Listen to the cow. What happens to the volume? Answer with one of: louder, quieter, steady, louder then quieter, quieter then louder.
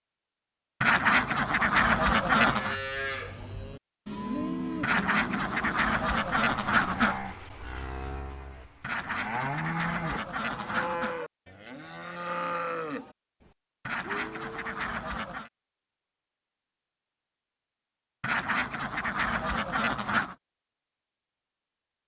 steady.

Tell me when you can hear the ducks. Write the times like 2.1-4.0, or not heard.
0.8-2.8, 4.8-7.2, 8.8-11.2, 13.8-15.5, 18.2-20.4.